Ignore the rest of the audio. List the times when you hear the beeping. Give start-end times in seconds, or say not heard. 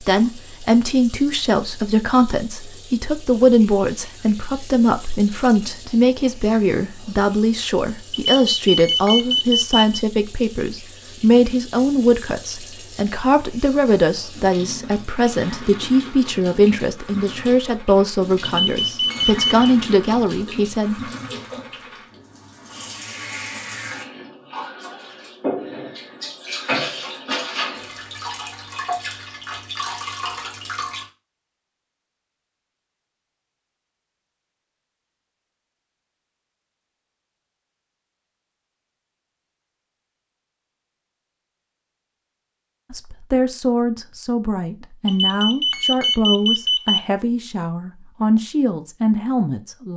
8.1-9.8, 18.4-19.6, 45.0-47.0.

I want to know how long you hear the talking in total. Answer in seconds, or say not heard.
28 s.